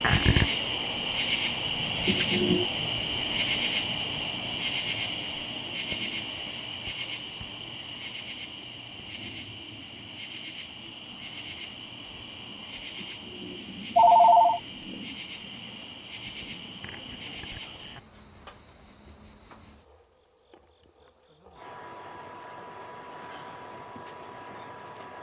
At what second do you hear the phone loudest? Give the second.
14 s.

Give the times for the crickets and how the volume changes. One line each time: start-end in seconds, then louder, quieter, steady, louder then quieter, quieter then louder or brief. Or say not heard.
0.0-25.1 quieter.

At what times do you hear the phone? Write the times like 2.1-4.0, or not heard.
2.0-2.6, 13.4-14.6.